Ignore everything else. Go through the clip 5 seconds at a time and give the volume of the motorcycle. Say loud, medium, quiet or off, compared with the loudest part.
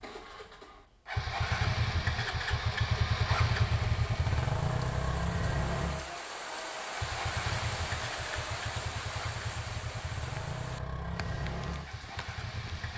loud, medium, medium.